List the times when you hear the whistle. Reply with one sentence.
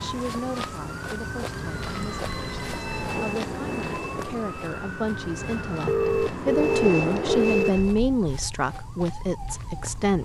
You can't hear the whistle here.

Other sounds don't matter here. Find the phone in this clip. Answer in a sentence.
The phone can be heard from 1.8 to 3.1 s and from 5.8 to 7.7 s.